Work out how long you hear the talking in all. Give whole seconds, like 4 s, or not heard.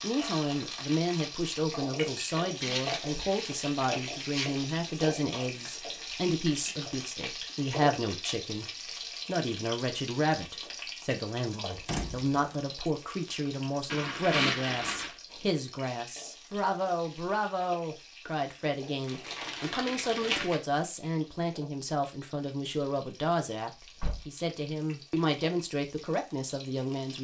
27 s.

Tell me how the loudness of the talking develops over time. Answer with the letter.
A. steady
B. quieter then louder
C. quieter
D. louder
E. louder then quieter
A.